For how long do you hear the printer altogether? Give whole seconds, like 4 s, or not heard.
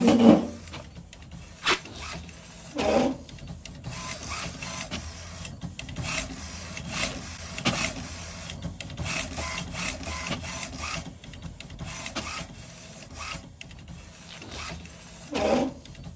16 s.